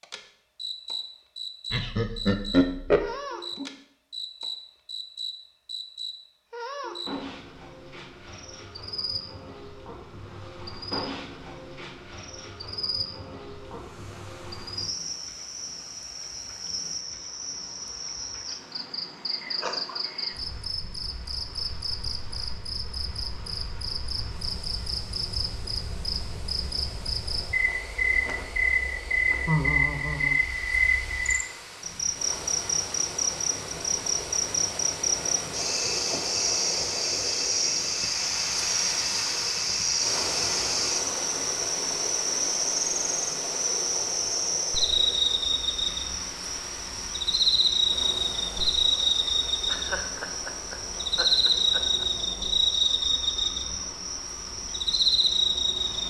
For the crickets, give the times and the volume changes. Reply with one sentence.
The crickets can be heard from 0.0 to 56.0 s, getting louder.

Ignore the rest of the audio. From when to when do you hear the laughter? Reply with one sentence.
You can hear the laughter from 1.7 to 3.1 s, from 29.4 to 30.4 s and from 49.6 to 52.0 s.